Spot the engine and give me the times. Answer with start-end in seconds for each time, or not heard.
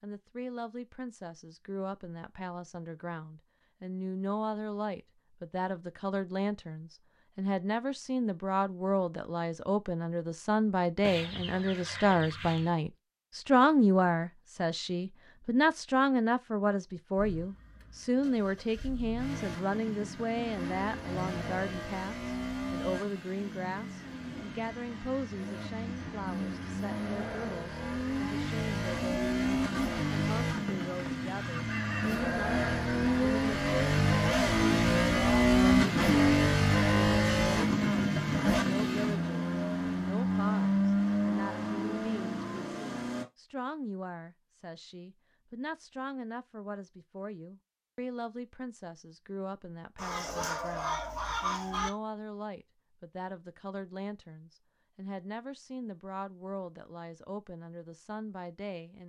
17.1-43.2.